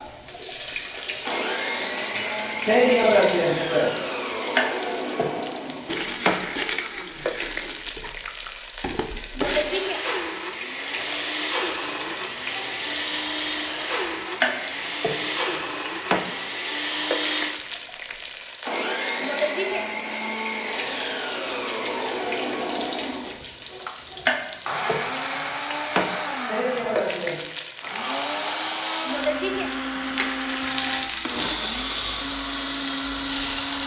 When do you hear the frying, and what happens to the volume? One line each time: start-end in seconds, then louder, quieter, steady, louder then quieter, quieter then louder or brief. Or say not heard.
0.0-33.8 steady.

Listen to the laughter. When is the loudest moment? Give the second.
3 s.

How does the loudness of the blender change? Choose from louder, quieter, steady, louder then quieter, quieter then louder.
steady.